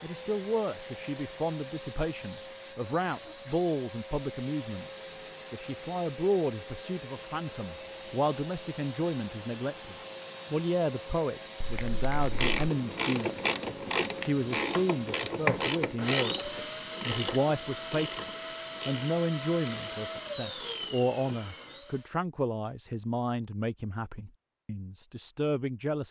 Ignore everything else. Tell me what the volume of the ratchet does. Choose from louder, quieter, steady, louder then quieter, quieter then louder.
quieter.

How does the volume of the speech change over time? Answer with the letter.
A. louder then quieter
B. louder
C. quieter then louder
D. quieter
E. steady
E.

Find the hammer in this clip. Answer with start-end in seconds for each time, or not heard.
not heard.